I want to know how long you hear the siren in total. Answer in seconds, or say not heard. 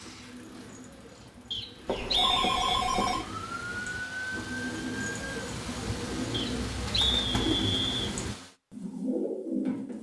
3 s.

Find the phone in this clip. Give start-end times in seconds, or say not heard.
1.9-3.2.